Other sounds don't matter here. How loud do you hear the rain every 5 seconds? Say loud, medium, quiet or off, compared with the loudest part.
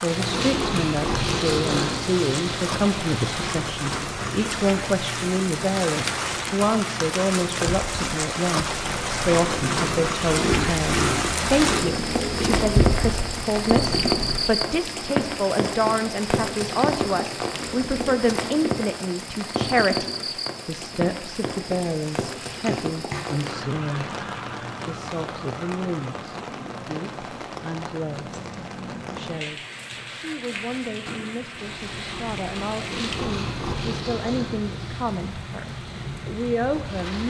medium, loud, loud, loud, medium, medium, medium, medium.